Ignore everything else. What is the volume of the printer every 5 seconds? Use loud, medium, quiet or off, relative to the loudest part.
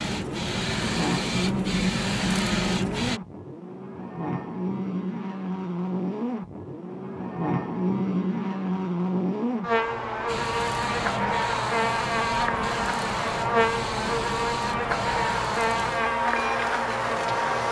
loud, off, medium, medium.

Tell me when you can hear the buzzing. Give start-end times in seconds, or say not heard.
0.0-17.6.